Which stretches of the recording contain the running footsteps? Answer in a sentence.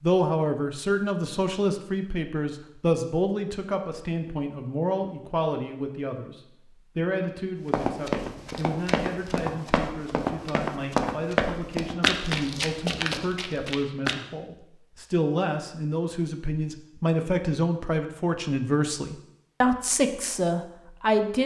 You can hear the running footsteps from 7.7 to 14.2 s.